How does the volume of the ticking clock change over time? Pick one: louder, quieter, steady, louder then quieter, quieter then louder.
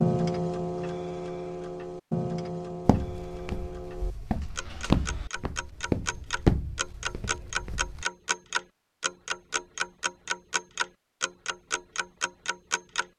quieter then louder.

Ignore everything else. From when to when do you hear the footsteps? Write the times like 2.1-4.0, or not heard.
2.9-8.1.